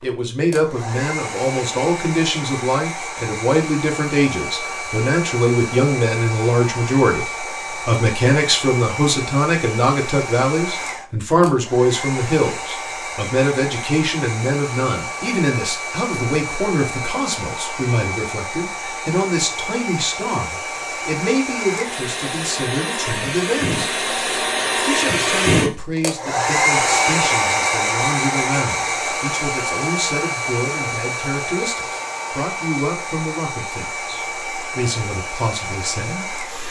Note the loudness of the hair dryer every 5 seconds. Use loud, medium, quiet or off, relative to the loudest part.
medium, medium, medium, medium, medium, loud, medium, medium.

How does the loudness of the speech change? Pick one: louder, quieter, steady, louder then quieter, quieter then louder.
quieter.